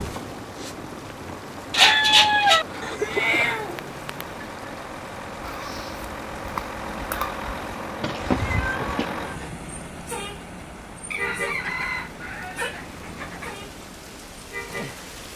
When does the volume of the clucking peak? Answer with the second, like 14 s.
2 s.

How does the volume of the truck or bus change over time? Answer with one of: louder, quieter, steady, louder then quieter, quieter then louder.
louder then quieter.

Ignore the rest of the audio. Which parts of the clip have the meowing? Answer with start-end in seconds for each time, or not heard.
3.0-4.3, 8.0-9.6.